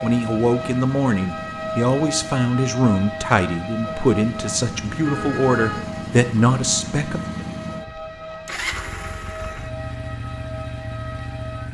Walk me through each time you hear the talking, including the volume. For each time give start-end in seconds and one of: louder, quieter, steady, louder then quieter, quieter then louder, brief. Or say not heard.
0.0-7.5 steady.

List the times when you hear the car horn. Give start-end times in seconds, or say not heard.
4.8-5.8.